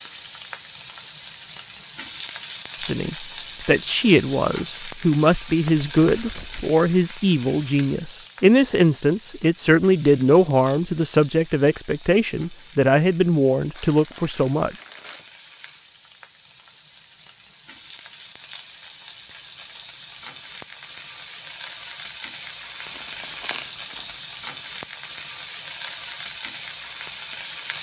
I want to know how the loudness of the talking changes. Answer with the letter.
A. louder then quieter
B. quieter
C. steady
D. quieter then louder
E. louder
C.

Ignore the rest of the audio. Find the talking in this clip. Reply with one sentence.
The talking can be heard from 2.8 to 14.8 s.